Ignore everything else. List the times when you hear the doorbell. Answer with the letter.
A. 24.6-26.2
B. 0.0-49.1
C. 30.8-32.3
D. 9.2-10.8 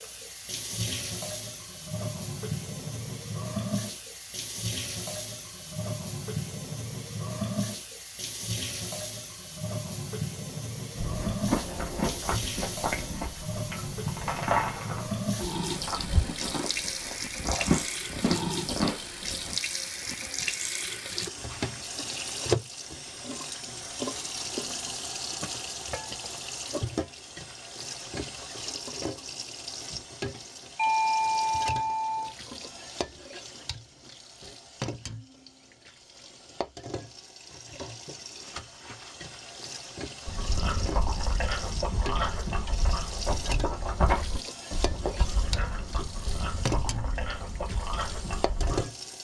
C.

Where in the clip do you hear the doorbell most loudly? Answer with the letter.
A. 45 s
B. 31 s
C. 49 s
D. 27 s
B.